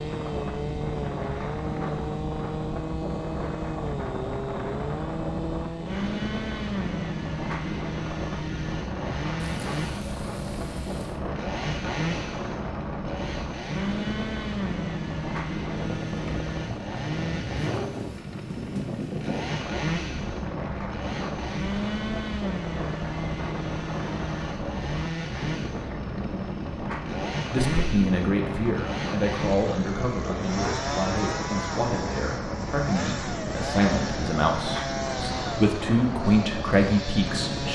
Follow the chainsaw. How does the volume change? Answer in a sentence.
The volume of the chainsaw stays about the same.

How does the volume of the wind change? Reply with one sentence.
The volume of the wind stays about the same.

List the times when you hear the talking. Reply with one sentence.
You can hear the talking from 27.5 to 37.7 s.